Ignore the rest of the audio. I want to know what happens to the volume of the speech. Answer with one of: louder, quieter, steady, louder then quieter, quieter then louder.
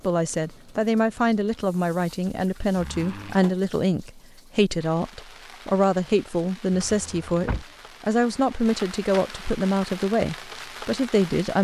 steady.